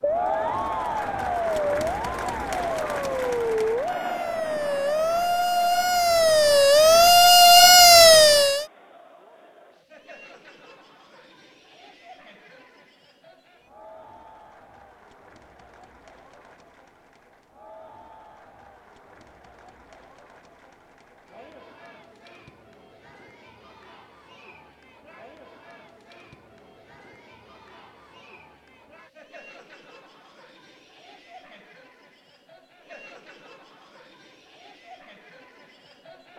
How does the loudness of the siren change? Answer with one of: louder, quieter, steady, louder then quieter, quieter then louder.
louder.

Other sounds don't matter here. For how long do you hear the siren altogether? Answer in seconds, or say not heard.
9 s.